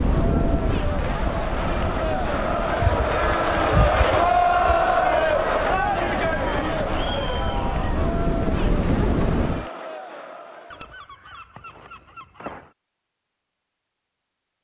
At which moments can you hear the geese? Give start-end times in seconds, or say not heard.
2.8-4.8, 10.7-12.7.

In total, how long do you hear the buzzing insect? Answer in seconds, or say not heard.
not heard.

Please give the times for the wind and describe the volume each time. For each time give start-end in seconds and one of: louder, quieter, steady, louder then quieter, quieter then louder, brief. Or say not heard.
0.0-9.7 quieter then louder.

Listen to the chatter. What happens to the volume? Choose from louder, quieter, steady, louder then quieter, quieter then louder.
louder then quieter.